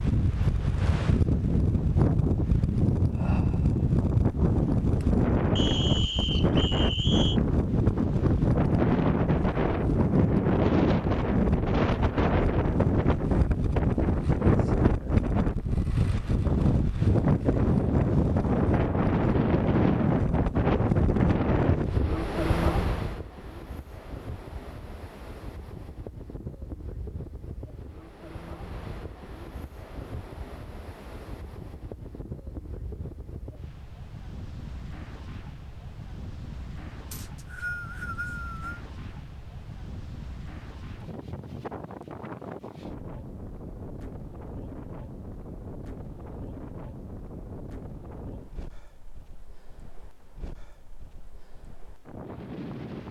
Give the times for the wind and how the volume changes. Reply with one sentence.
The wind can be heard from 0.0 to 53.0 s, getting quieter.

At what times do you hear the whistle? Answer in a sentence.
The whistle can be heard from 5.5 to 7.4 s and from 37.1 to 38.8 s.